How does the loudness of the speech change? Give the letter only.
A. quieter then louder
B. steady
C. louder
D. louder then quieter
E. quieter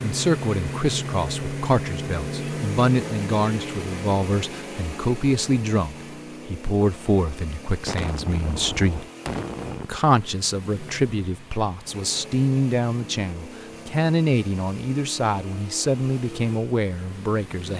B.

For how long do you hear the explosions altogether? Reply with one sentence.
You can hear the explosions for 2 seconds altogether.